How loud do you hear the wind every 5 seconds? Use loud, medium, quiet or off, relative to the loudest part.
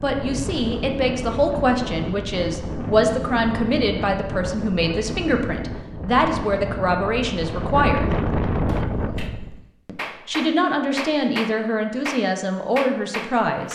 loud, loud, off.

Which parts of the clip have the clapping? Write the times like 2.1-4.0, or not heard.
8.7-13.7.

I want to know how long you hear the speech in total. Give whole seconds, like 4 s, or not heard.
12 s.